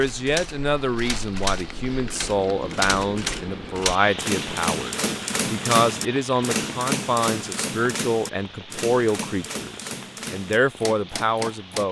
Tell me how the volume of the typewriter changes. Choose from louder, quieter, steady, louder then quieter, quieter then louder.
louder then quieter.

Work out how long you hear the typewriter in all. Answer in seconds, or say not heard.
12 s.